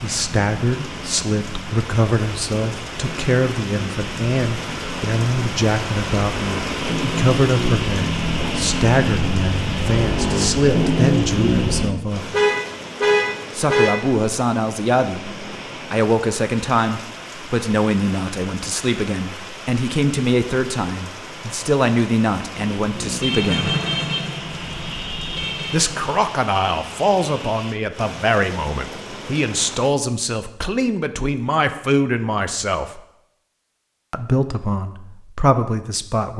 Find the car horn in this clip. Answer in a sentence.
The car horn can be heard from 12.3 to 13.9 s and from 23.2 to 25.8 s.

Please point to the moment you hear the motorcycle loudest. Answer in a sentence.
The volume of the motorcycle peaks at 11 seconds.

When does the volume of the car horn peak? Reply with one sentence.
The volume of the car horn peaks at 13 seconds.